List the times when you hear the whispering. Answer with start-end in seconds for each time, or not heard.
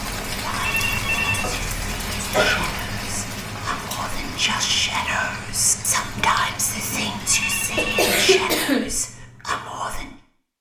0.4-10.2.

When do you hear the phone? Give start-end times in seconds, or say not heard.
0.6-1.5, 7.2-8.1.